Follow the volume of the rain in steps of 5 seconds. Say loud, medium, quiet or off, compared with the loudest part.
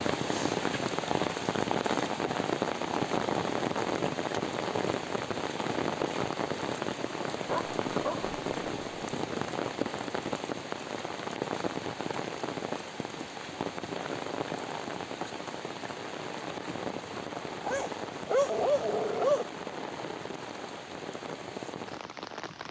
loud, loud, medium, medium, medium.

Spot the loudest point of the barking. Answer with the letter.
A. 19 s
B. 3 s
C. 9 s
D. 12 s
A.